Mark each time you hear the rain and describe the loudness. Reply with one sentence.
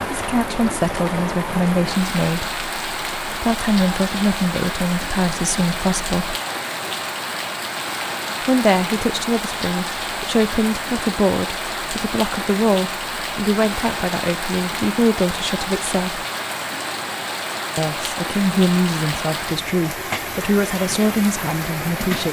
The rain can be heard from 0.0 to 22.2 s, at a steady volume.